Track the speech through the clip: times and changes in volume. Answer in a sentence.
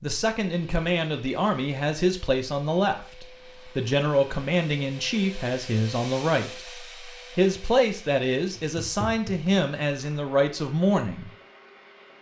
The speech can be heard from 0.0 to 11.3 s, at a steady volume.